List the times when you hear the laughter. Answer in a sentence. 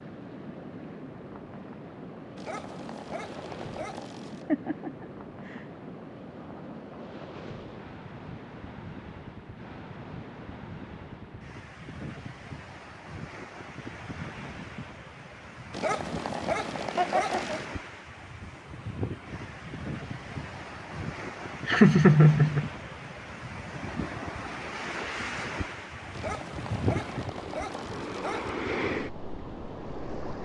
You can hear the laughter from 4.2 to 5.7 s, from 16.9 to 17.6 s and from 21.6 to 22.6 s.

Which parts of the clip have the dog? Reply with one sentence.
The dog can be heard from 2.4 to 4.5 s, from 15.7 to 17.8 s and from 26.1 to 28.6 s.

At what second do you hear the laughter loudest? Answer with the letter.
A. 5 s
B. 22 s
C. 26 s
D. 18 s
B.